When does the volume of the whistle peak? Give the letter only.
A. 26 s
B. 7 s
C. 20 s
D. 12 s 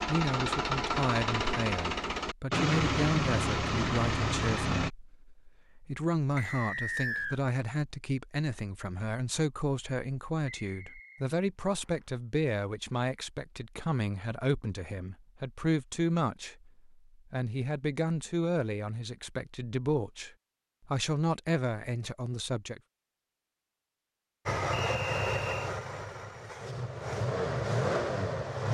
B.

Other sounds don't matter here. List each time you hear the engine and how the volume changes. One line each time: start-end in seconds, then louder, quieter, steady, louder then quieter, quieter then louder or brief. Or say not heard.
0.0-4.9 steady
24.4-28.6 quieter then louder.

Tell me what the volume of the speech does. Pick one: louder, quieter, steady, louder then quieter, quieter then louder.
steady.